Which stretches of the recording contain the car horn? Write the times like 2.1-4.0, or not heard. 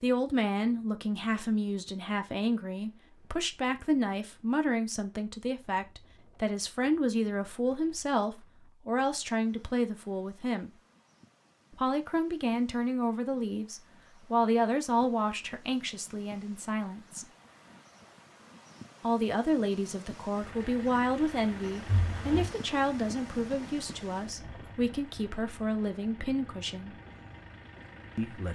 21.9-22.5.